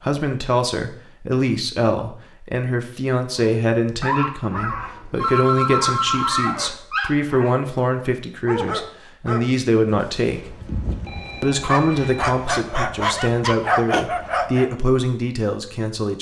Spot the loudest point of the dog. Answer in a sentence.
The loudest moment of the dog is at 14 seconds.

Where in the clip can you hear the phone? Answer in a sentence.
You can hear the phone from 4.8 to 6.5 s and from 10.3 to 12.3 s.